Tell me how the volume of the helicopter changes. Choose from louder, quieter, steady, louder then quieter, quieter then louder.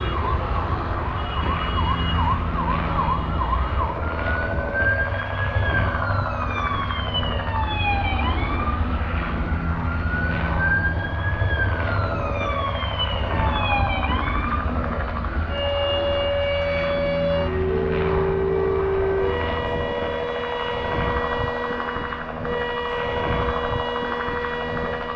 steady.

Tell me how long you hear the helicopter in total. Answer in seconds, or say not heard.
25 s.